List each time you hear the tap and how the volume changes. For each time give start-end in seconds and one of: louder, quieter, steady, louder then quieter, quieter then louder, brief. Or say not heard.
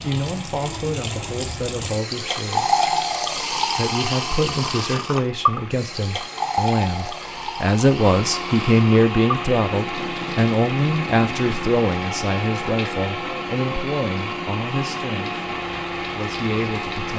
0.0-17.1 quieter.